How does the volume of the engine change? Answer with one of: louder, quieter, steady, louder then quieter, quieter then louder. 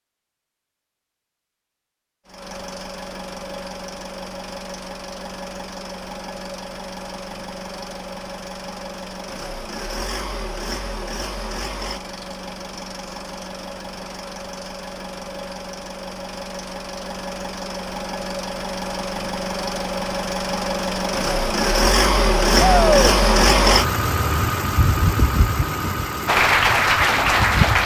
louder.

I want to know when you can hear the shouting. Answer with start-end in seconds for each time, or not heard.
22.6-23.1.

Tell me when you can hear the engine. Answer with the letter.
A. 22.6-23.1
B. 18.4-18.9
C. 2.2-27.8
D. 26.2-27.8
C.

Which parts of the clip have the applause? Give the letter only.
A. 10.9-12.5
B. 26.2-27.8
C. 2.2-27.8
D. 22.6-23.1
B.